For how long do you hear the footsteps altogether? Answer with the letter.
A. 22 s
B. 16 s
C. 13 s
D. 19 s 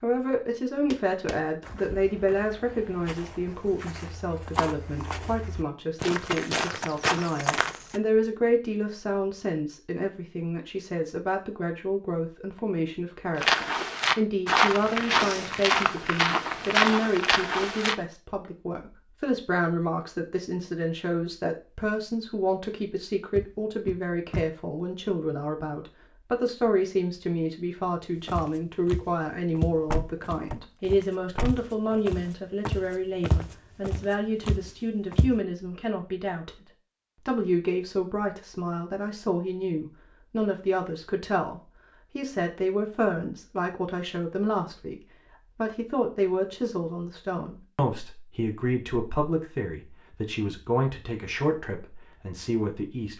D.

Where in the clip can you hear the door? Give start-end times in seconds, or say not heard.
23.4-24.4, 29.9-31.9.